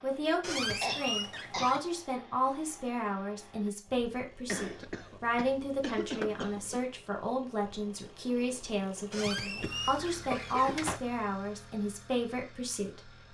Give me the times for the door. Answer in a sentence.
The door can be heard from 0.4 to 1.8 s, from 6.0 to 6.5 s and from 9.1 to 11.0 s.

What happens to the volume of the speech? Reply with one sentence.
The loudness of the speech stays about the same.